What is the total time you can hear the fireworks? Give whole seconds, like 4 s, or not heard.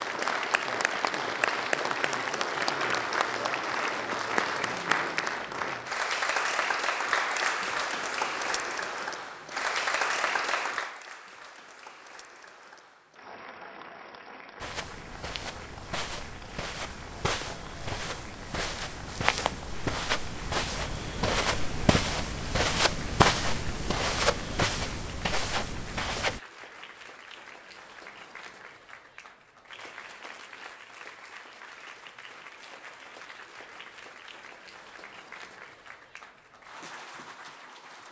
not heard.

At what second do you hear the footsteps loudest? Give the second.
23 s.